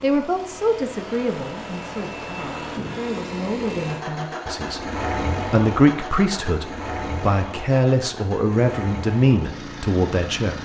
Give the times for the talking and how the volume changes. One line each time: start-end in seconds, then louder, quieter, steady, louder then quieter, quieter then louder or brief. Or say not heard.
0.0-10.6 louder.